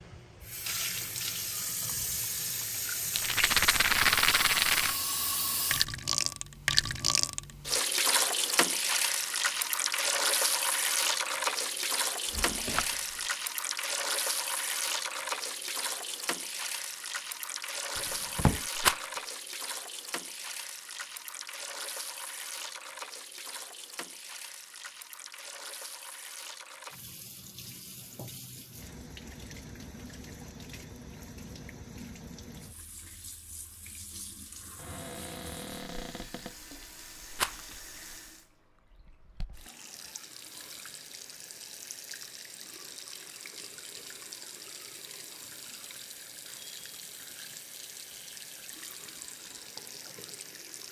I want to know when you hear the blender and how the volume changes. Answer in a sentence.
You can't hear the blender here.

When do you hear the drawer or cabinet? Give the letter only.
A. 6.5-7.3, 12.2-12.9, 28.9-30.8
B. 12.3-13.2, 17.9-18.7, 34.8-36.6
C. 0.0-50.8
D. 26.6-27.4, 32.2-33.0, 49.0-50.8
B.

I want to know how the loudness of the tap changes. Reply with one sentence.
The loudness of the tap goes down.